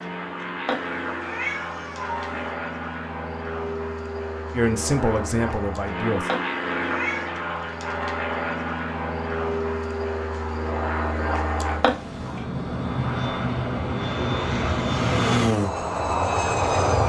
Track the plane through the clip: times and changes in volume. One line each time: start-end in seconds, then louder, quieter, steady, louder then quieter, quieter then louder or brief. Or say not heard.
0.0-17.0 louder.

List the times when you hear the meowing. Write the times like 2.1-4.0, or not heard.
0.7-2.5, 6.2-7.3, 11.8-12.4.